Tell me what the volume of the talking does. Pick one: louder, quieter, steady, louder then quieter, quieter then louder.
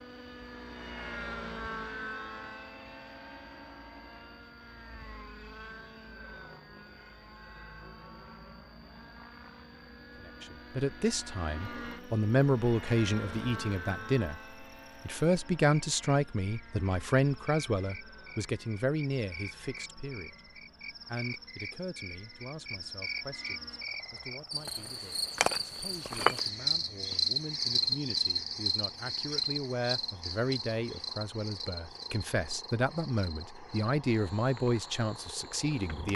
quieter then louder.